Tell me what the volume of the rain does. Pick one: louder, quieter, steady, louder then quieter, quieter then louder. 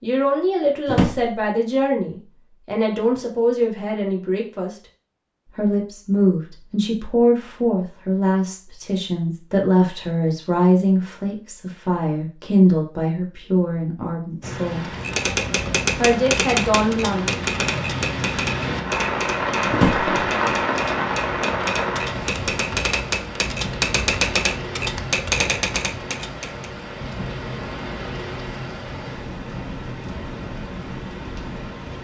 louder then quieter.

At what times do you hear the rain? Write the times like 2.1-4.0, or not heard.
14.4-31.9.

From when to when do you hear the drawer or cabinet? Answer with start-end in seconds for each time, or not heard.
0.8-1.4, 19.7-20.1.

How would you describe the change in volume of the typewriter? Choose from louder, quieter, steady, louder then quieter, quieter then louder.
quieter then louder.